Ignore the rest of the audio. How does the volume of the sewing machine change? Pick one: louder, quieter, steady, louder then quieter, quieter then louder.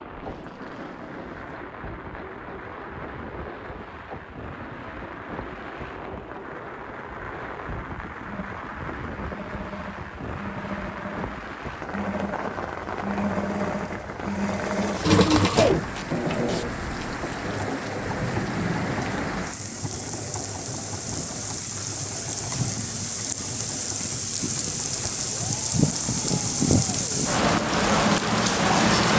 louder then quieter.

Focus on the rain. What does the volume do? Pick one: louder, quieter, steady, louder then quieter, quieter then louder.
louder.